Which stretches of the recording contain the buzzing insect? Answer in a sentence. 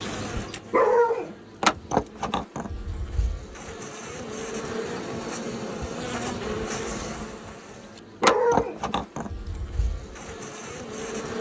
You can hear the buzzing insect from 0.0 to 11.3 s.